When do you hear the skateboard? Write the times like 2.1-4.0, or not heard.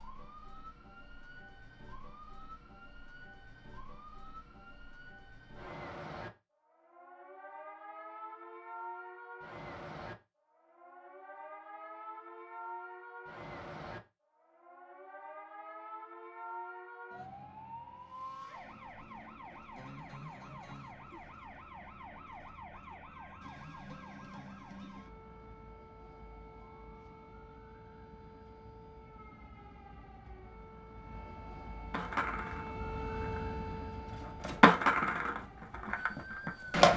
31.9-36.9.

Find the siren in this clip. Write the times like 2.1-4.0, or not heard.
0.0-36.6.